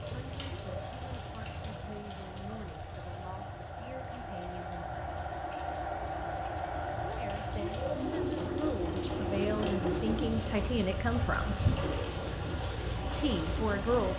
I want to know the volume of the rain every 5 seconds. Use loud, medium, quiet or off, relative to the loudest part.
medium, medium, loud.